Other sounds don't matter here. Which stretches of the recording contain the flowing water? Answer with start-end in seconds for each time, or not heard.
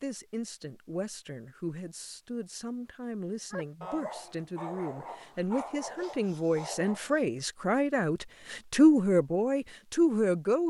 not heard.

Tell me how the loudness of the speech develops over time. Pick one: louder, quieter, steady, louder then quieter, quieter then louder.
louder.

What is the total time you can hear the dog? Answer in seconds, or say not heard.
4 s.